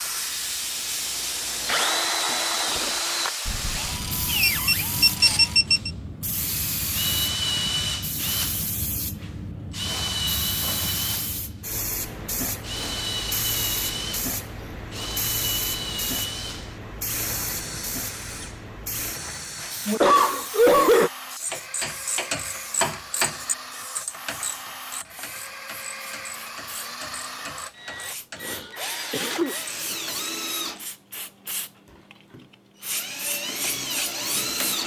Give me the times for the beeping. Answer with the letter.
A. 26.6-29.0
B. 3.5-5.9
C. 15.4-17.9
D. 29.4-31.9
B.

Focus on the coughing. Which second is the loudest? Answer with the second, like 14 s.
21 s.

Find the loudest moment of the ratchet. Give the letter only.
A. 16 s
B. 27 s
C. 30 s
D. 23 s
D.